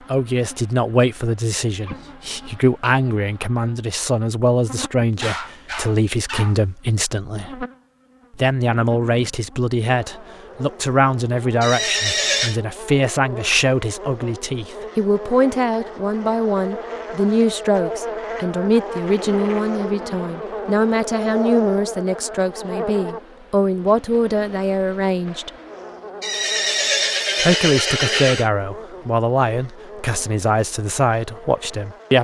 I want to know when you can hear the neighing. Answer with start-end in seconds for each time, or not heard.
11.6-12.6, 26.2-28.5.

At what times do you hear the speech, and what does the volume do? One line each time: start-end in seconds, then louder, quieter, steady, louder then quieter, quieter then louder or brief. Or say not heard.
0.1-7.7 steady
8.3-25.5 steady
27.4-32.1 steady.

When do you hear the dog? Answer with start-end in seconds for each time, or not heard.
5.2-6.6.